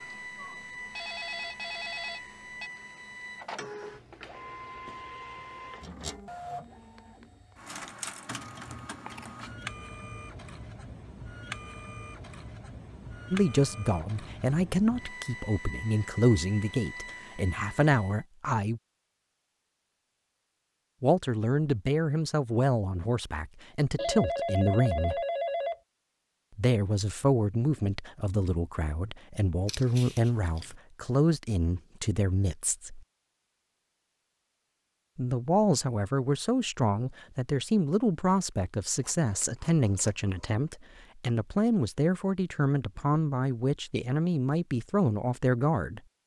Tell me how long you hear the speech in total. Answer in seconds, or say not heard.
27 s.